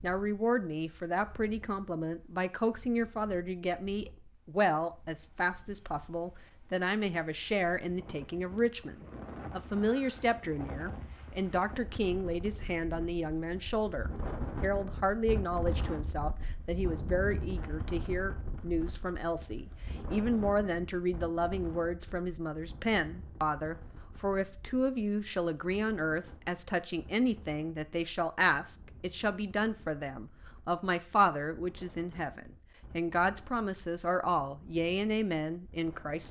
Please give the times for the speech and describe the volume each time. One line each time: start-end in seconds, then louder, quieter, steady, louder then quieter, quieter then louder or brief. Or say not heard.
0.0-36.2 steady.